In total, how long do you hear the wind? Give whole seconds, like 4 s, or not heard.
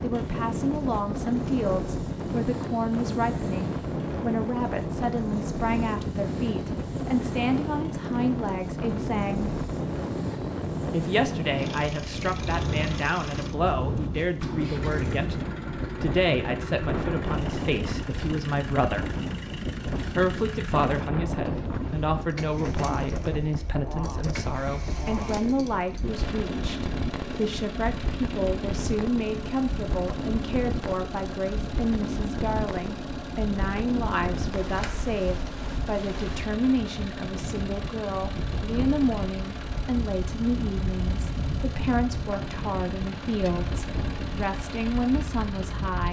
46 s.